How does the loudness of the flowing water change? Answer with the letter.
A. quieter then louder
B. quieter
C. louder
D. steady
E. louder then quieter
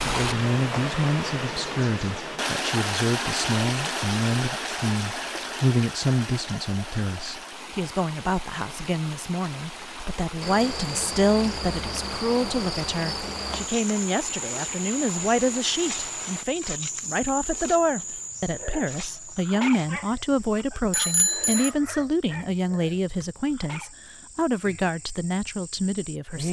B.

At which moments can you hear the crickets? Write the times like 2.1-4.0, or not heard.
10.4-26.4.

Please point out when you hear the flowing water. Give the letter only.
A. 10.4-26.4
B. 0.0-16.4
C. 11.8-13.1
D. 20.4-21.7
B.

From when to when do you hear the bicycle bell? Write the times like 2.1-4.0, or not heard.
20.4-21.7.